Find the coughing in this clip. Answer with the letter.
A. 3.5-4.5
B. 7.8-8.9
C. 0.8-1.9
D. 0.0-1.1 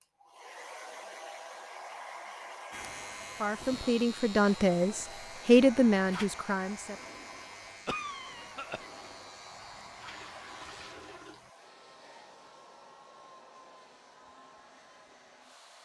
B.